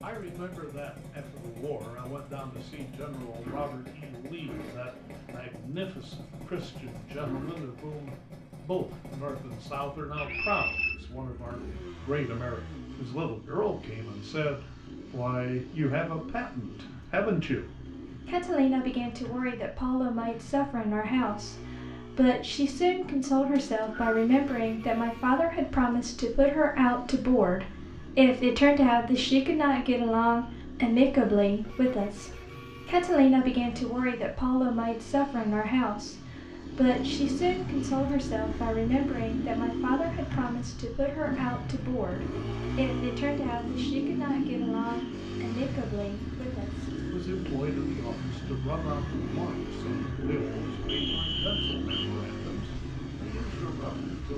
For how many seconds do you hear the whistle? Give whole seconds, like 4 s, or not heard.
3 s.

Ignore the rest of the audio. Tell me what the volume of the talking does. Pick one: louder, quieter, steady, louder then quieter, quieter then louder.
louder then quieter.